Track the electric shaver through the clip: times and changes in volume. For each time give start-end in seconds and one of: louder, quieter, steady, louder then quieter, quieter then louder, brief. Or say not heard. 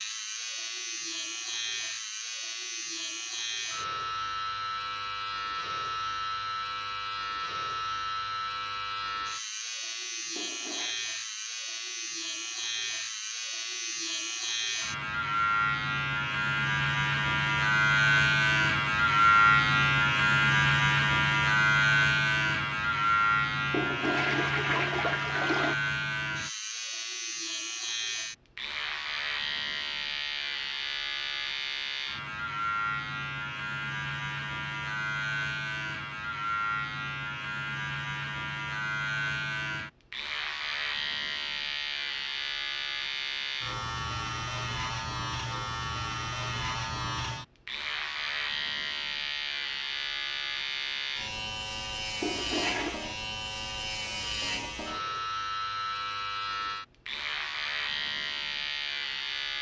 0.0-59.5 louder then quieter.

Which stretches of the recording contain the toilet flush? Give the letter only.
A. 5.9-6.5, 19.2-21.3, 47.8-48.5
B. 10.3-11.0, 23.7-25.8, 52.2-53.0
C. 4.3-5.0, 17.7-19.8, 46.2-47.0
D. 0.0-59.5
B.